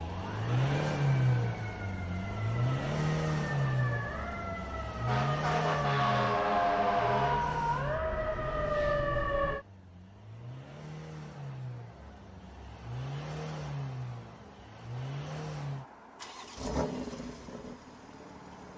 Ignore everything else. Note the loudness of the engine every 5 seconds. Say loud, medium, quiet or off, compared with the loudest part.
loud, medium, medium, medium.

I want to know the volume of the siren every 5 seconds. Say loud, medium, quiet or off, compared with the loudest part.
quiet, loud, off, off.